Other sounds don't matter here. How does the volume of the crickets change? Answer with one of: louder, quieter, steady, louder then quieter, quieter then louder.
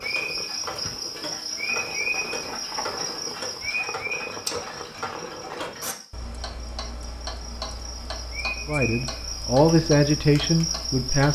quieter then louder.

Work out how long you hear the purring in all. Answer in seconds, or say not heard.
6 s.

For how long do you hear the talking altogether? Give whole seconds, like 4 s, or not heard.
3 s.